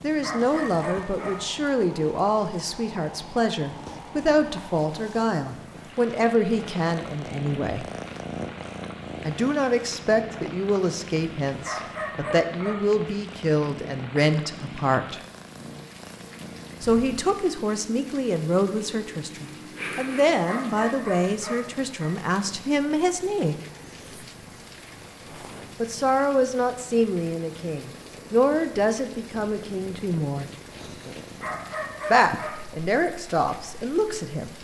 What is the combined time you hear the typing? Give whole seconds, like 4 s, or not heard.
not heard.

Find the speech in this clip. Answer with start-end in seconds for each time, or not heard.
0.0-7.8, 9.2-15.2, 16.8-23.6, 25.8-30.5, 32.1-34.5.